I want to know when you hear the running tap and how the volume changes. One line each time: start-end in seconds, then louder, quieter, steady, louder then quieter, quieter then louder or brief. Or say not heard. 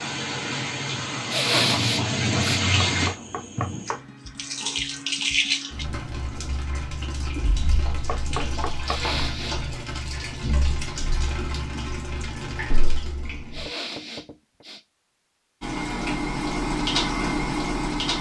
0.0-13.7 quieter
15.6-18.1 brief.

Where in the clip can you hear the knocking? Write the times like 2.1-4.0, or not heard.
2.8-4.0, 8.1-9.0, 13.7-14.7.